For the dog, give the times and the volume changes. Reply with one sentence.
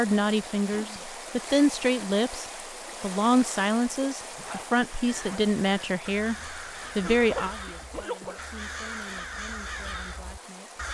The dog can't be heard in this clip.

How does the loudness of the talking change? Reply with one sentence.
The loudness of the talking goes down.